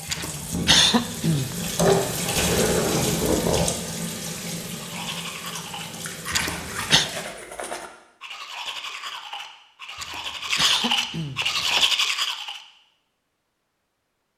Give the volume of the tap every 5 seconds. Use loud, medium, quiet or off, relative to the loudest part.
loud, medium, off.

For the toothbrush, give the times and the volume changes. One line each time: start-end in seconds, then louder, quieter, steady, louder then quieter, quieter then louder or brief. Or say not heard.
4.7-12.6 louder.